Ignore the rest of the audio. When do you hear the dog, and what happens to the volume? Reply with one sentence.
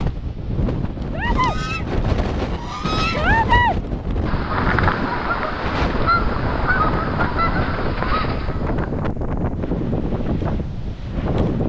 The dog can't be heard in this clip.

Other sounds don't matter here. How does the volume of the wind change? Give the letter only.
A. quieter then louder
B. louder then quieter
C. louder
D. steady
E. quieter
D.